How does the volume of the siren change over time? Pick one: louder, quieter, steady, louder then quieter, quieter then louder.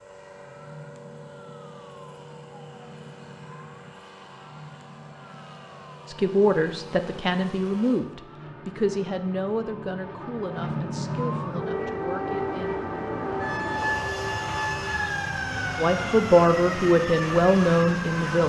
louder.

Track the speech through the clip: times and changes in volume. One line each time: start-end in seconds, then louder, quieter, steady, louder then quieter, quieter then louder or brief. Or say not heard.
6.0-12.8 quieter
15.8-18.4 brief.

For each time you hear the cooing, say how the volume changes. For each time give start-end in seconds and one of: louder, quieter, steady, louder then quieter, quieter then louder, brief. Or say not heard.
not heard.